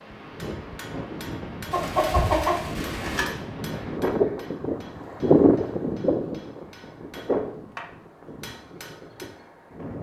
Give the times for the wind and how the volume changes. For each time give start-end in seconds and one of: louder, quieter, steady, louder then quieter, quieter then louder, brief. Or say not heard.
0.0-9.9 louder then quieter.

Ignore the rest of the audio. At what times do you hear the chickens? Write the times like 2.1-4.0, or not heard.
1.7-3.2.